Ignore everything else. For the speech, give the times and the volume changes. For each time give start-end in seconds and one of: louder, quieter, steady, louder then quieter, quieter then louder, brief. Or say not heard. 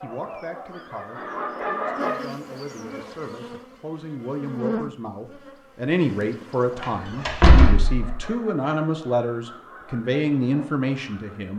0.0-11.5 louder.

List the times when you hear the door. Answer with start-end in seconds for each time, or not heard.
6.8-8.1.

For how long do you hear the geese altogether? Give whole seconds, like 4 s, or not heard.
7 s.